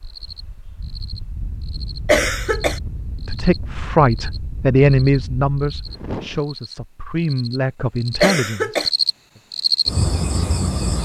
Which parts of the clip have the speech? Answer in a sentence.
The speech can be heard from 3.2 to 9.4 s.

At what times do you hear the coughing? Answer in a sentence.
The coughing can be heard from 2.0 to 2.8 s and from 8.2 to 8.9 s.